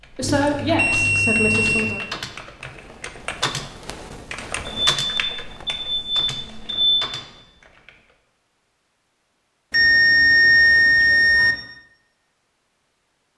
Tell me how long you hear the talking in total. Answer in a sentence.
The talking can be heard for 2 seconds in total.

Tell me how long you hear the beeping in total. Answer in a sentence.
The beeping can be heard for 6 seconds in total.